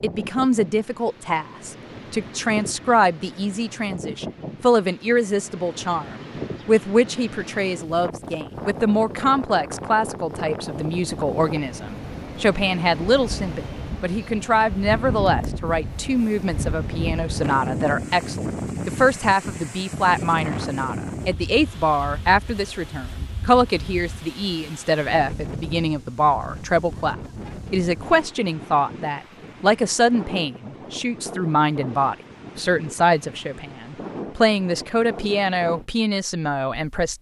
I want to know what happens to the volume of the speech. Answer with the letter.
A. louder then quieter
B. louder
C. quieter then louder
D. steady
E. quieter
D.